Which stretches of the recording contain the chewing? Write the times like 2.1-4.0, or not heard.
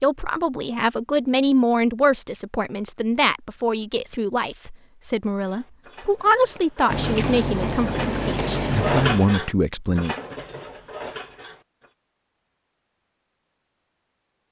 6.9-9.3.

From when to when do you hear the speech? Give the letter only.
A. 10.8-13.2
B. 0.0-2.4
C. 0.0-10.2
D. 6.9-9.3
C.